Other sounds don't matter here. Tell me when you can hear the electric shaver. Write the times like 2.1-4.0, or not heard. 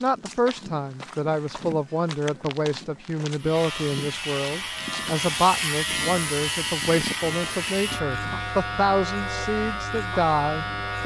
3.4-11.0.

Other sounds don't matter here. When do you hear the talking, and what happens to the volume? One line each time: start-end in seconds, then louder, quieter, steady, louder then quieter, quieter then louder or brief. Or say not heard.
0.0-11.0 steady.